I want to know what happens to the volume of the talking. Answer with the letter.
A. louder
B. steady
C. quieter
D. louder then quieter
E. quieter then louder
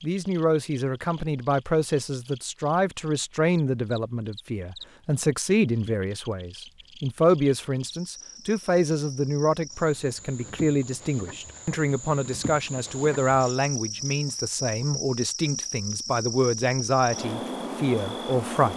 B.